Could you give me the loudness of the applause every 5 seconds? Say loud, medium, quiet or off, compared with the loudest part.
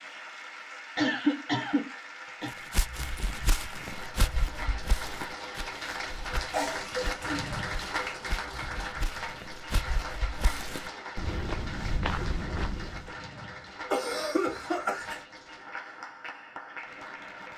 medium, loud, medium, medium.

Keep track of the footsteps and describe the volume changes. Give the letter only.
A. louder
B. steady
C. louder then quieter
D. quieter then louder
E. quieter
D.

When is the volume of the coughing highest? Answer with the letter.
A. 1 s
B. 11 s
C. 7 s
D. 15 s
A.